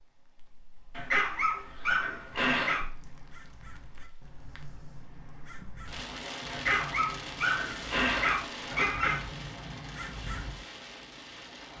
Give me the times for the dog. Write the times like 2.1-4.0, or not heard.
0.9-2.9, 6.5-9.2.